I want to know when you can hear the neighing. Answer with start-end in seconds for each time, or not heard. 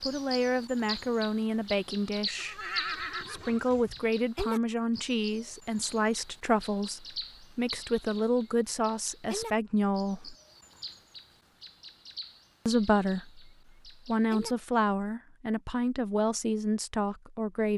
2.4-4.1.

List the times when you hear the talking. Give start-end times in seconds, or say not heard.
0.0-2.6, 3.2-10.3, 12.7-17.7.